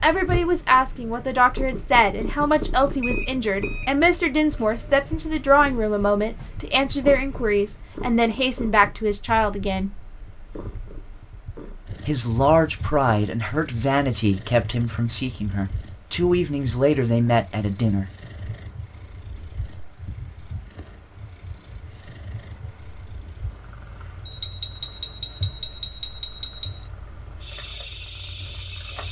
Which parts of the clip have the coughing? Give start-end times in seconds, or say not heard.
not heard.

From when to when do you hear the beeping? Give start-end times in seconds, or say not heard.
3.0-4.0, 24.2-26.8.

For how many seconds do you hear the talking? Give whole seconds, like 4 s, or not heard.
16 s.